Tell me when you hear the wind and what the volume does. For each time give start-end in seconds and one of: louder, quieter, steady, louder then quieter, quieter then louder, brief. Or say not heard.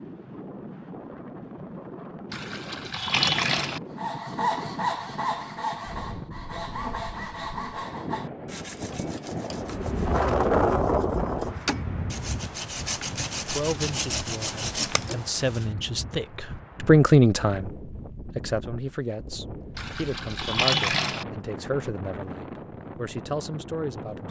0.0-24.2 louder then quieter.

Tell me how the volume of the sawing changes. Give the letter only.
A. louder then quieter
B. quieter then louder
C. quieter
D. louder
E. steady
B.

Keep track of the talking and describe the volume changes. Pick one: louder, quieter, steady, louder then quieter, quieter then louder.
louder then quieter.